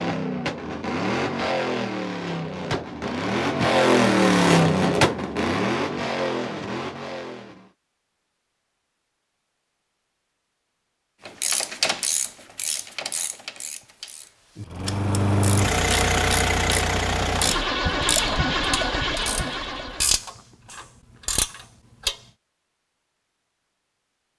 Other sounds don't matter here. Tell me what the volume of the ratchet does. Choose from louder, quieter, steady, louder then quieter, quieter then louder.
quieter then louder.